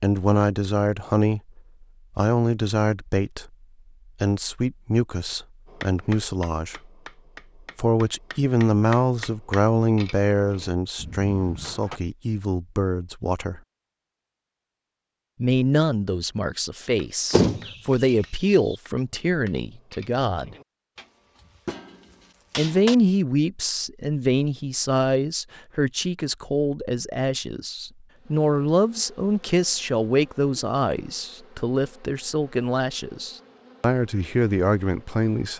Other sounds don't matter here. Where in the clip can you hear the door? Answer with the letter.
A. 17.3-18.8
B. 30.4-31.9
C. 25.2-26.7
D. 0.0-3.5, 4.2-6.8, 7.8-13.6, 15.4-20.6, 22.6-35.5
A.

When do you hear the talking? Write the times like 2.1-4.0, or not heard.
0.0-3.5, 4.2-6.8, 7.8-13.6, 15.4-20.6, 22.6-35.5.